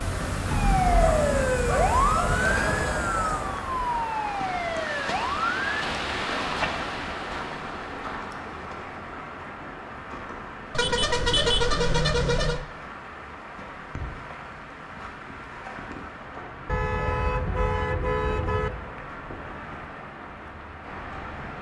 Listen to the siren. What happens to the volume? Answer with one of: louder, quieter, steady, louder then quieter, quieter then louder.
quieter.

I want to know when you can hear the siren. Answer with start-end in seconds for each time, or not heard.
0.0-5.7.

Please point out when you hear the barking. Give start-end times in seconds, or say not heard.
0.9-3.5.